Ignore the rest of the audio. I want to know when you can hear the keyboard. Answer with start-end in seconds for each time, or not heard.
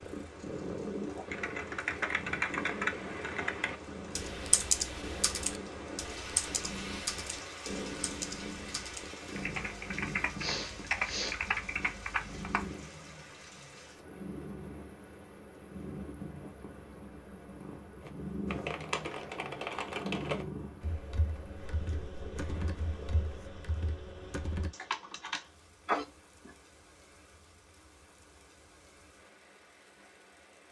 1.2-12.7, 18.0-25.4.